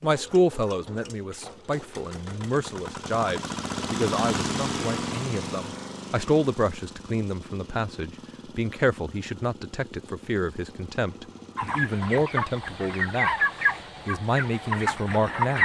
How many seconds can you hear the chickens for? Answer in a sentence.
You can hear the chickens for 4 seconds altogether.